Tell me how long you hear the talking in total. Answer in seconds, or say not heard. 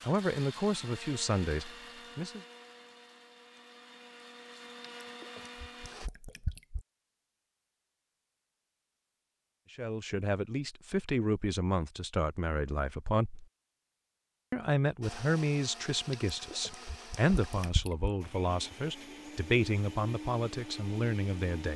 13 s.